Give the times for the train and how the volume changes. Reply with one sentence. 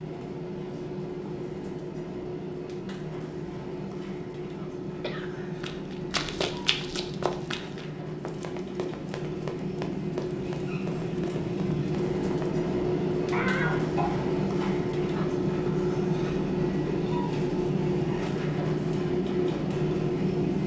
The train can be heard from 0.0 to 20.6 s, getting louder.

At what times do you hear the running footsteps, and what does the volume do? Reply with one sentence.
The running footsteps can be heard from 5.6 to 12.6 s, getting quieter.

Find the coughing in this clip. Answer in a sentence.
You can hear the coughing from 5.0 to 5.7 s and from 13.3 to 15.2 s.